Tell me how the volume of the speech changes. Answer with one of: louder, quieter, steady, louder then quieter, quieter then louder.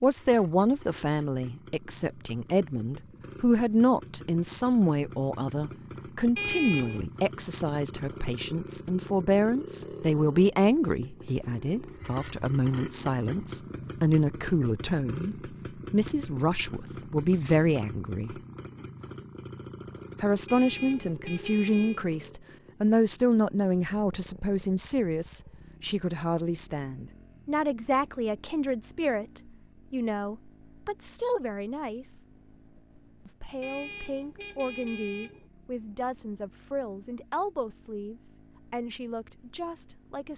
quieter.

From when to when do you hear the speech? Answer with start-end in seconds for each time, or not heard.
0.0-18.4, 20.2-32.2, 33.2-40.3.